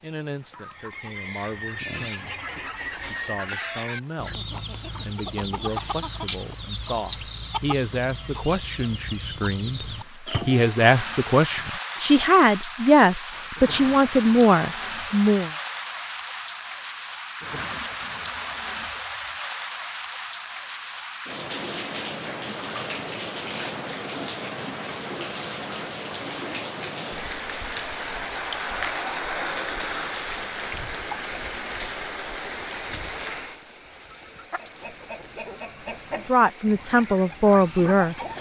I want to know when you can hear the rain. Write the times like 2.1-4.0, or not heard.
0.0-38.3.